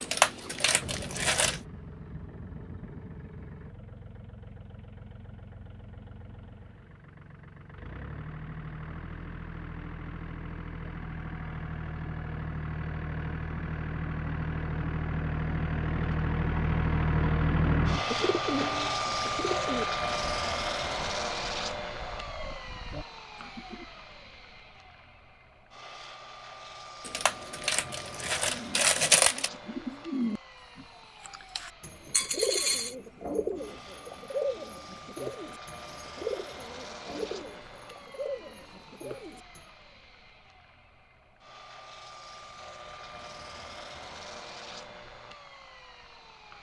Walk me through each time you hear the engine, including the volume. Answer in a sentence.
You can hear the engine from 0.0 to 46.5 s, getting louder then quieter.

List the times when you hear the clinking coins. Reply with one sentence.
The clinking coins can be heard from 0.0 to 1.6 s, from 27.1 to 29.5 s and from 32.1 to 33.0 s.